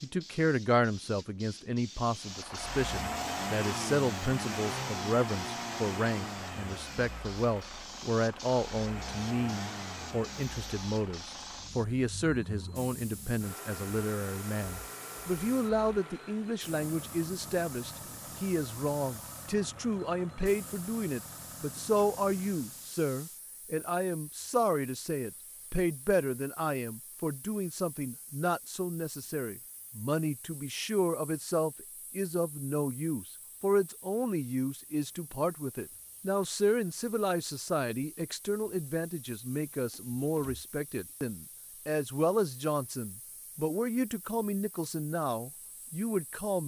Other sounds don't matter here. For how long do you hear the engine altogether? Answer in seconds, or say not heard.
21 s.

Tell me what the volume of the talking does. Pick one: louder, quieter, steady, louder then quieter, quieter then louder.
steady.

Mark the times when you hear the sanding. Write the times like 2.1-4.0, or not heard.
not heard.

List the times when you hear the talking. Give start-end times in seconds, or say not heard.
0.0-46.6.